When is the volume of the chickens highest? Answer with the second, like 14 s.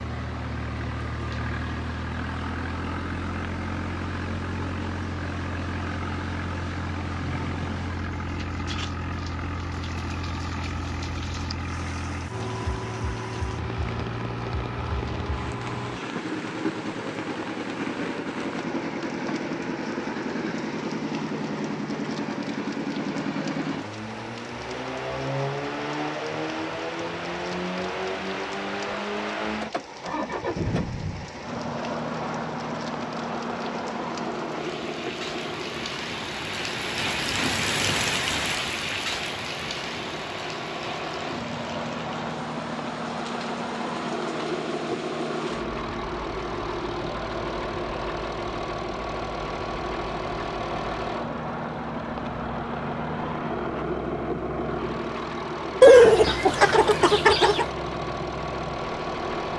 56 s.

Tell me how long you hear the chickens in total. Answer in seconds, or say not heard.
2 s.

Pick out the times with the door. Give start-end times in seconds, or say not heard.
not heard.